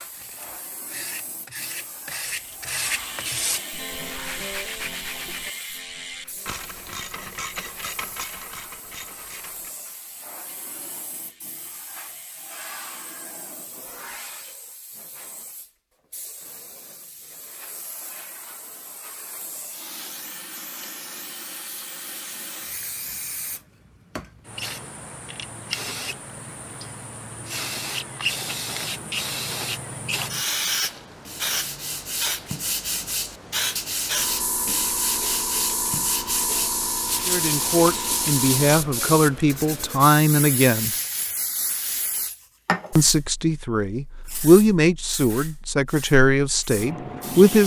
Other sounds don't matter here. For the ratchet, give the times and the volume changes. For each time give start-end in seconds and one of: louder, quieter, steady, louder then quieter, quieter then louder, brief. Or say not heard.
2.4-13.2 quieter.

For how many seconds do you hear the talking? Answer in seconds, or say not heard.
8 s.